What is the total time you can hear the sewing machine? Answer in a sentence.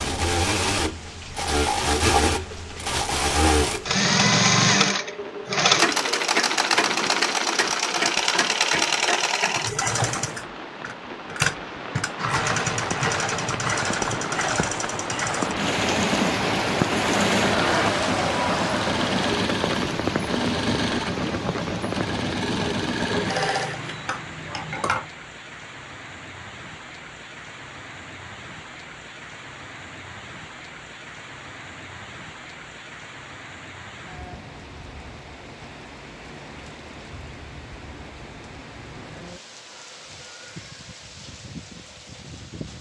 The sewing machine can be heard for 25 seconds in total.